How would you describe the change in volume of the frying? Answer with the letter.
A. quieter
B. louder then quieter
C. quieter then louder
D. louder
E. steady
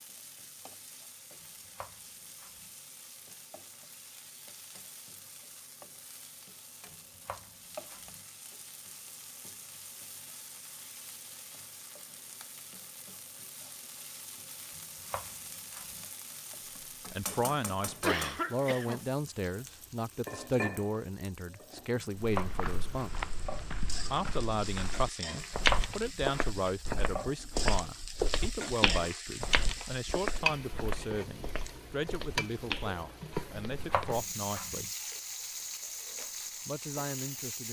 D.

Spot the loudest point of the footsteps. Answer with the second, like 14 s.
26 s.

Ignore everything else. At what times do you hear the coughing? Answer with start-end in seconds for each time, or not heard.
18.0-19.0.